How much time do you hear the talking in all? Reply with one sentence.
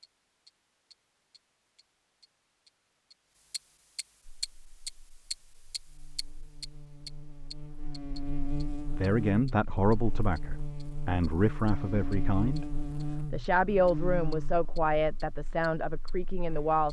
You can hear the talking for 8 seconds altogether.